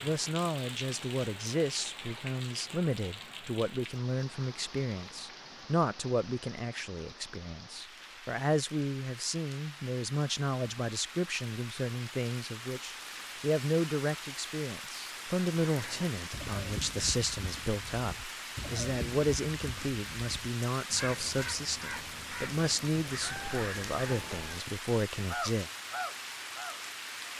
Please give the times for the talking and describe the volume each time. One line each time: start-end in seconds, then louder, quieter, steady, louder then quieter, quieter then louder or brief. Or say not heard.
0.0-25.7 steady.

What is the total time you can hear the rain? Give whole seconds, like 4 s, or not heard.
27 s.